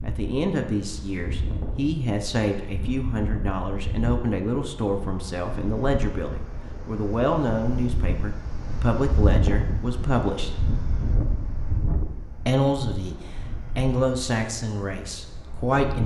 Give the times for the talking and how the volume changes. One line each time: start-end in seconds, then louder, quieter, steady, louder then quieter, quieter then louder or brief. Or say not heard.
0.0-10.5 steady
12.4-13.2 brief
13.8-16.0 brief.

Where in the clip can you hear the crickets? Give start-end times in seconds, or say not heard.
not heard.